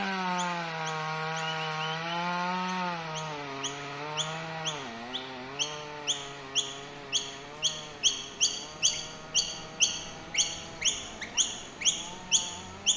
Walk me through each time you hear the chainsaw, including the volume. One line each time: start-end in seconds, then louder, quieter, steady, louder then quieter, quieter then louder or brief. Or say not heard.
0.0-12.9 quieter.